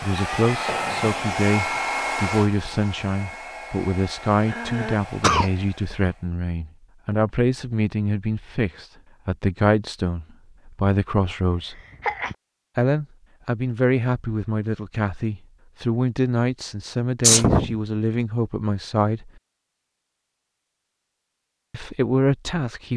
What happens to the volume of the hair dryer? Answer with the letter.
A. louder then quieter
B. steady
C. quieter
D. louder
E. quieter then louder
C.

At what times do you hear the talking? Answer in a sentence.
The talking can be heard from 0.0 to 11.8 s, from 12.8 to 19.3 s and from 21.7 to 22.9 s.